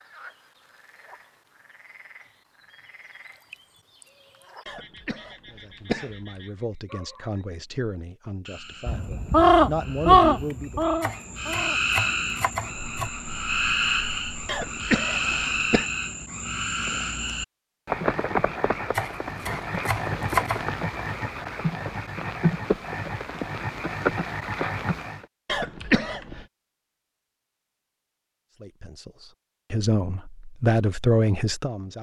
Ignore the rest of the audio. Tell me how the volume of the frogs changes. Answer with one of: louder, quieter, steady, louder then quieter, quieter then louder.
louder.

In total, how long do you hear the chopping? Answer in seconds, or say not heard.
4 s.